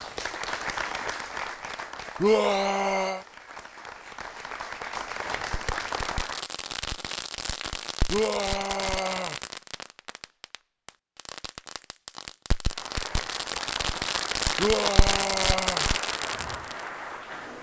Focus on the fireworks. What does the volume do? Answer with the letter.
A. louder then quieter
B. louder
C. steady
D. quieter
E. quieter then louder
E.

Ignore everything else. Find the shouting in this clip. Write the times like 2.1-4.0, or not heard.
2.2-3.2, 8.1-9.3, 14.6-15.8.